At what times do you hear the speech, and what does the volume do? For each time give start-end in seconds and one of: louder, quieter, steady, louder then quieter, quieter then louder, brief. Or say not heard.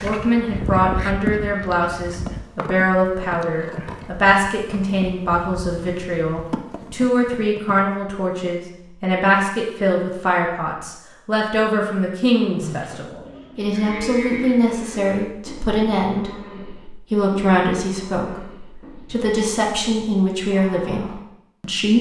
0.0-21.9 steady.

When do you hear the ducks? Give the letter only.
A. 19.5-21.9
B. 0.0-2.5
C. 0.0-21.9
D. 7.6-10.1
B.